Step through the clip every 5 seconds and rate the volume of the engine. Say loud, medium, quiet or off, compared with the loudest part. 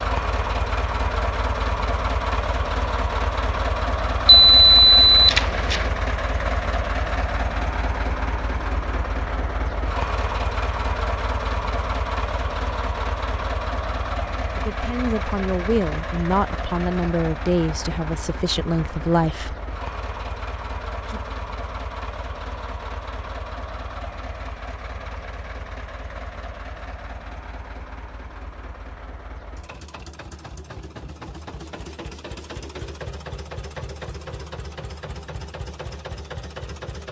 loud, loud, loud, medium, medium, quiet, medium, medium.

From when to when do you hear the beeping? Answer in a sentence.
You can hear the beeping from 4.2 to 5.8 s.